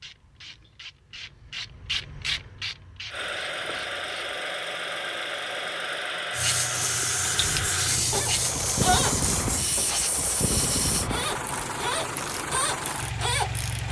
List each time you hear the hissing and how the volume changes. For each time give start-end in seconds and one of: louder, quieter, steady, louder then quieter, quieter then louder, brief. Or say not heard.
6.3-11.1 steady.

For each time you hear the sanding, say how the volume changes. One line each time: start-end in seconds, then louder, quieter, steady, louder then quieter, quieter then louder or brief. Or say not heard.
not heard.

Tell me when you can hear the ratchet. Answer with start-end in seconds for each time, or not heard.
0.0-4.3, 7.3-9.3, 11.1-13.8.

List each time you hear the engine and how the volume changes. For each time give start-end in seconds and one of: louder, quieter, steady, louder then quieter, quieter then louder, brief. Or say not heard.
3.1-13.8 steady.